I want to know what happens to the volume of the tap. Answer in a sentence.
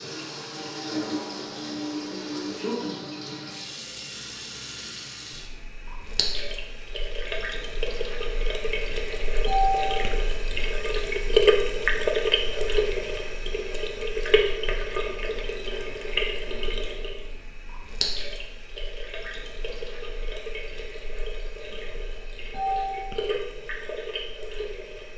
The volume of the tap goes up, then down.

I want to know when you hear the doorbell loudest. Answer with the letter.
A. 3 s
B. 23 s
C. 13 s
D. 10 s
D.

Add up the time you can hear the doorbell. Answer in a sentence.
You can hear the doorbell for 3 seconds altogether.